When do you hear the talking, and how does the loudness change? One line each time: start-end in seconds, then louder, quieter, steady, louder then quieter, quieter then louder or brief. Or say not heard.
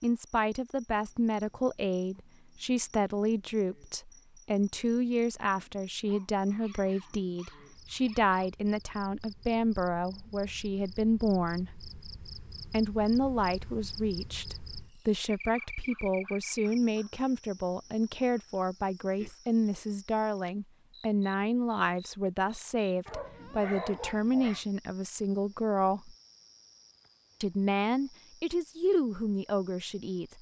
0.0-11.7 steady
12.7-26.1 steady
27.4-30.3 brief.